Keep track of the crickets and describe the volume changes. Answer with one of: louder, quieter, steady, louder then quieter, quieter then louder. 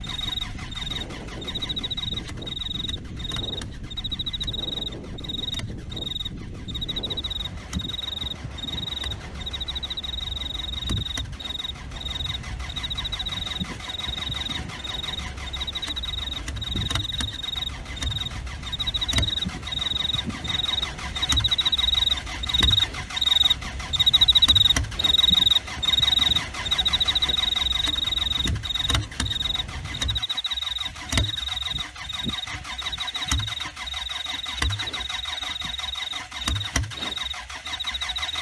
louder then quieter.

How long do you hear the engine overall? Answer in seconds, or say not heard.
38 s.